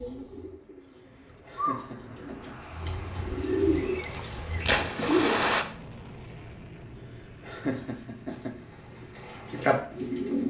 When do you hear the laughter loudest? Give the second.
8 s.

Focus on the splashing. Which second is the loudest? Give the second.
5 s.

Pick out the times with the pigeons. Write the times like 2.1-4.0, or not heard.
0.0-5.5, 8.2-10.4.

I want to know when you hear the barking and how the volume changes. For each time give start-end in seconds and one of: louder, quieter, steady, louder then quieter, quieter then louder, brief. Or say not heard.
not heard.